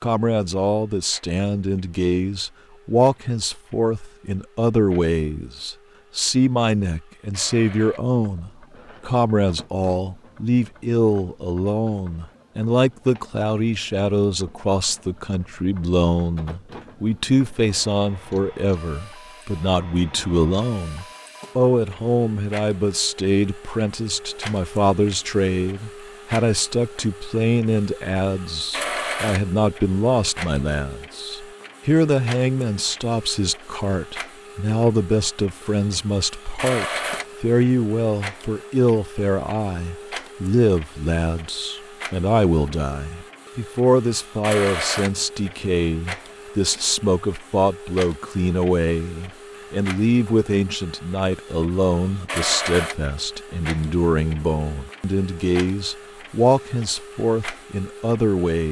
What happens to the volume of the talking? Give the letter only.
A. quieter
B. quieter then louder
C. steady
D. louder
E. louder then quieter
C.